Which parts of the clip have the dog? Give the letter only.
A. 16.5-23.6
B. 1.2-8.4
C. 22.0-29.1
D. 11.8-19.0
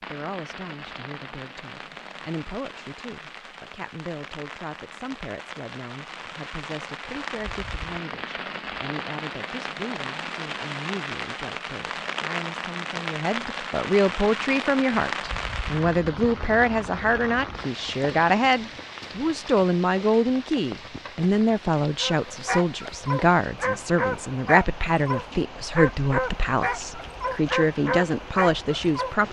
C.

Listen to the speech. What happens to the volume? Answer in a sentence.
The loudness of the speech goes up.